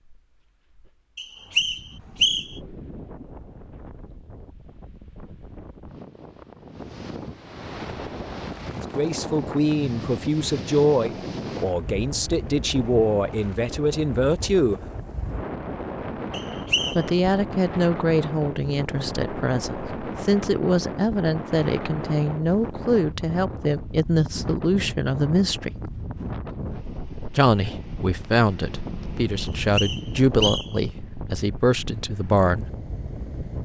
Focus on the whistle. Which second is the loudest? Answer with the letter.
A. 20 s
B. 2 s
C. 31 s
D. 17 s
B.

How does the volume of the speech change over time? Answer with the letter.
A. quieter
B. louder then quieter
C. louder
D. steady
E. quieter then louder
D.